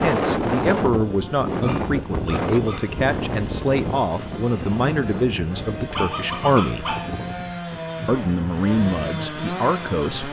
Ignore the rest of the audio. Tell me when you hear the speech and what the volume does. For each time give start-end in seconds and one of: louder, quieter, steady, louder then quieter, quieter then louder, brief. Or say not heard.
0.0-7.0 steady
8.1-10.2 brief.